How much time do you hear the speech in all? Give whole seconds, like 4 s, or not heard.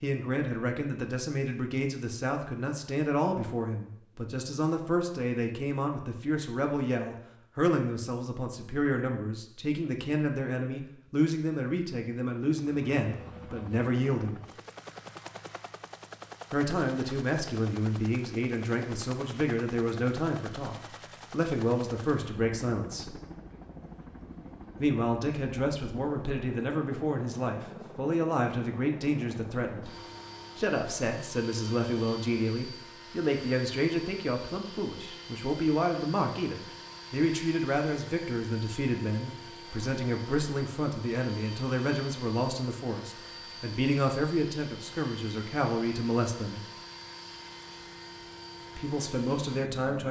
44 s.